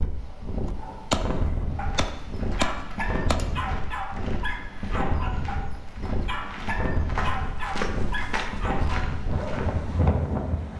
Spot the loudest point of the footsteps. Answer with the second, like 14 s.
8 s.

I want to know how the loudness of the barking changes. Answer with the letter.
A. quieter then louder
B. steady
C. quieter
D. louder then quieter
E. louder
E.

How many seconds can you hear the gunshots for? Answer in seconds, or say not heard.
3 s.